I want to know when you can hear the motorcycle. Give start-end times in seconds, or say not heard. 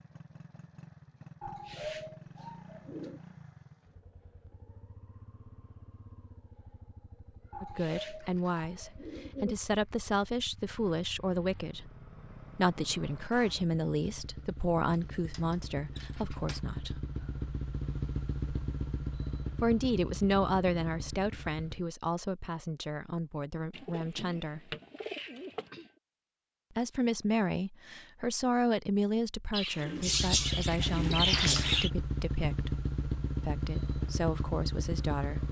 0.0-21.9, 29.9-35.4.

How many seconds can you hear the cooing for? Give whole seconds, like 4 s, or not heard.
10 s.